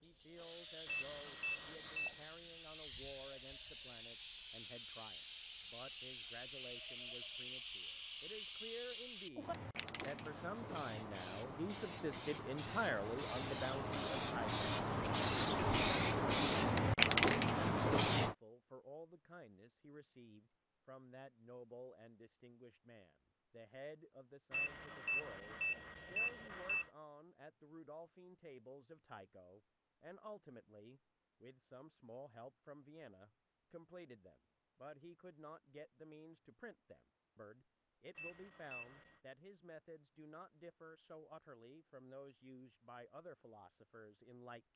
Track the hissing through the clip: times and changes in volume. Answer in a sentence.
You can hear the hissing from 0.0 to 18.4 s, getting louder.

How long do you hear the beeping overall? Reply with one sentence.
You can hear the beeping for 5 seconds altogether.